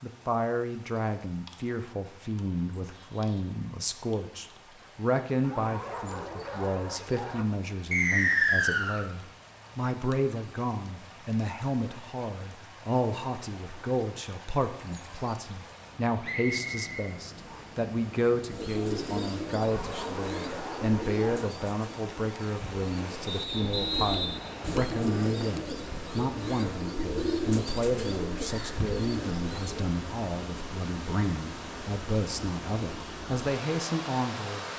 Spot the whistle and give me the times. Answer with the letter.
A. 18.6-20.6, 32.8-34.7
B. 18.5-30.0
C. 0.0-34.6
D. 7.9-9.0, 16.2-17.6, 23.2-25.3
D.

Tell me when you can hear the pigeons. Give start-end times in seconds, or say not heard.
18.5-30.0.